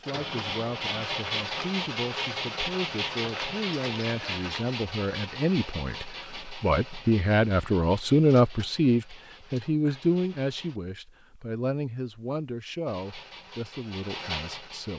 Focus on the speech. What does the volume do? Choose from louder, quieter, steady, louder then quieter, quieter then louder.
louder then quieter.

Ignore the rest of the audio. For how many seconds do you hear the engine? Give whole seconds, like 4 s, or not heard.
13 s.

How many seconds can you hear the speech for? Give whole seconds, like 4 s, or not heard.
15 s.